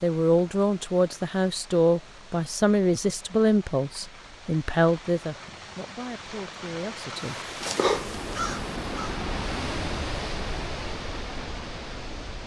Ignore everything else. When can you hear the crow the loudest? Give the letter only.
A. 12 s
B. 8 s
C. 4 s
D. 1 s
B.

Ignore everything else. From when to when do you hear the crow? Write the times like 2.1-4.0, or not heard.
7.3-9.2.